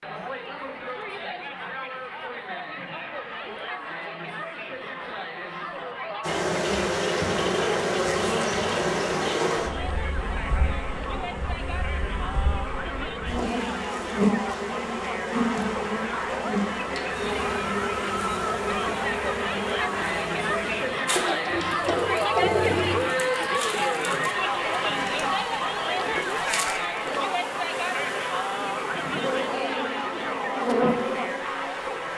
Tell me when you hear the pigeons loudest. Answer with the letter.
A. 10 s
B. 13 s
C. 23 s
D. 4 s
C.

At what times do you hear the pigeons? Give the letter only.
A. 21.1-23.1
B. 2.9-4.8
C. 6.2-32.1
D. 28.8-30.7
A.